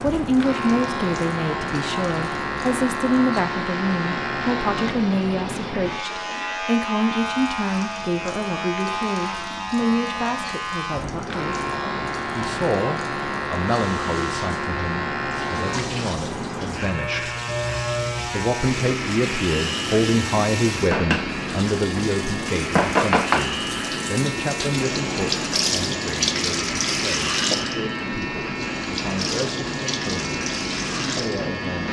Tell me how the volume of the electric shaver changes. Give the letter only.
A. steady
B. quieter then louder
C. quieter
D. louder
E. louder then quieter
A.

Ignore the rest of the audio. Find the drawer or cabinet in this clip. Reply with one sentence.
You can't hear the drawer or cabinet here.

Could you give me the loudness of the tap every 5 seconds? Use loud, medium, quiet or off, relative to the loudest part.
quiet, quiet, quiet, medium, loud, loud, medium.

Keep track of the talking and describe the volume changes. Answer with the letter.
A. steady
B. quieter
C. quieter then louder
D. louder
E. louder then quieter
B.